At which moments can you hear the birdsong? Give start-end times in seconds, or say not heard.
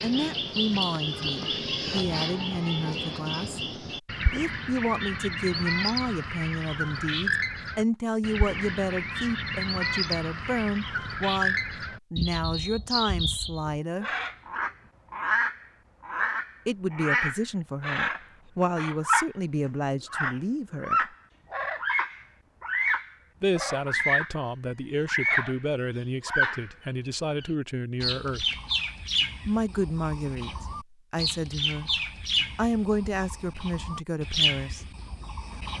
0.0-24.4, 25.1-25.6, 26.2-35.7.